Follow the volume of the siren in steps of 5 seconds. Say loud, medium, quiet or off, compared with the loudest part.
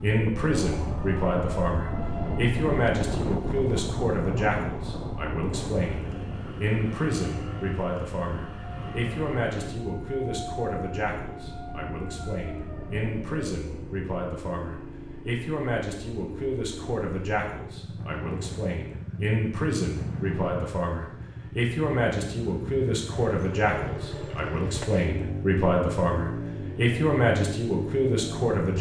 loud, medium, medium, off, off, off.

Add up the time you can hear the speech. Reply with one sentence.
The speech can be heard for 29 seconds in total.